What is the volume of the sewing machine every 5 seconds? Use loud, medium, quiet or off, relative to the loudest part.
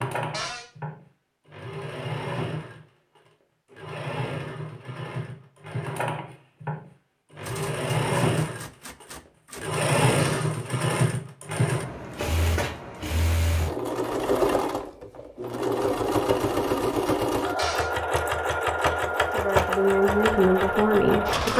medium, loud, loud, loud, loud.